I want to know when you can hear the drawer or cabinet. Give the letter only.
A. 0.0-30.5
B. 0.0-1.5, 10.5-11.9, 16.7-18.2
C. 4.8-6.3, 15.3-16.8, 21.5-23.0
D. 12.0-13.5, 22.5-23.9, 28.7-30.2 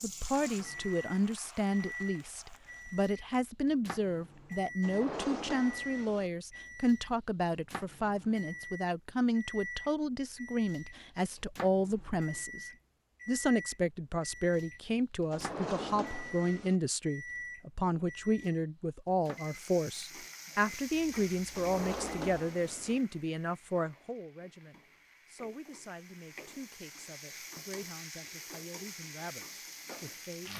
C.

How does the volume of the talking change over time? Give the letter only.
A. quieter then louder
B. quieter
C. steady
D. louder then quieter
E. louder
B.